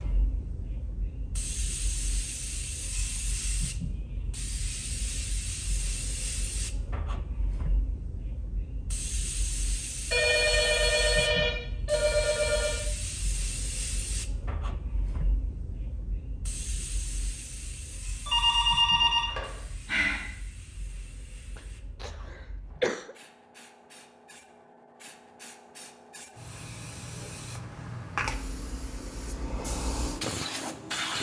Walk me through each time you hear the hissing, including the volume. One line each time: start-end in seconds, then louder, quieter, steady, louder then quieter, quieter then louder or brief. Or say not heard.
0.0-31.1 quieter then louder.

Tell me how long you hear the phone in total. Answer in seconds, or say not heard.
5 s.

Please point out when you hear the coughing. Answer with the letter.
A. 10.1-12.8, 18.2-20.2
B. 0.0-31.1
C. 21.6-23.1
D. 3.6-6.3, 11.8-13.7
C.